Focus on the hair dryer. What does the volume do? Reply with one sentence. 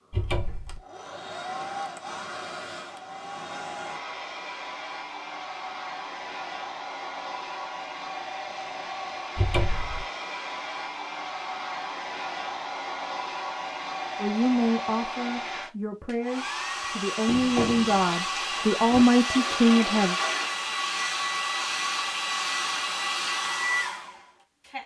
The loudness of the hair dryer goes up.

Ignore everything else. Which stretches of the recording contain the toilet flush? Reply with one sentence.
The toilet flush can be heard from 18.0 to 20.6 s.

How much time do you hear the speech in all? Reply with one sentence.
The speech can be heard for 6 seconds in total.